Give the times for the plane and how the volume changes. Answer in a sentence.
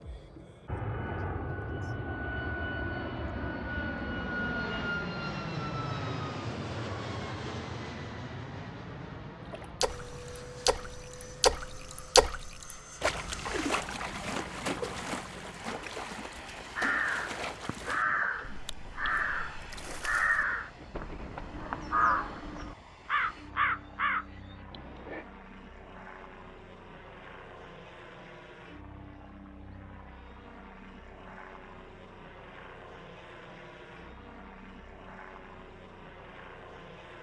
The plane can be heard from 0.0 to 37.1 s, getting quieter.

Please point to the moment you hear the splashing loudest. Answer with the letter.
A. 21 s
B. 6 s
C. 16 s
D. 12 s
D.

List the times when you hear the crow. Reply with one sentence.
You can hear the crow from 16.8 to 25.2 s.